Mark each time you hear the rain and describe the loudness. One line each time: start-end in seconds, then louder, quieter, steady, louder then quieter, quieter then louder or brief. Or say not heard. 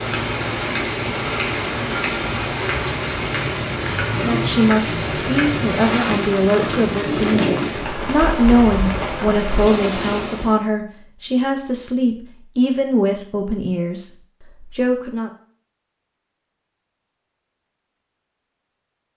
0.0-10.6 steady.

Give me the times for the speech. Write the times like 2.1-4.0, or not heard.
4.2-15.3.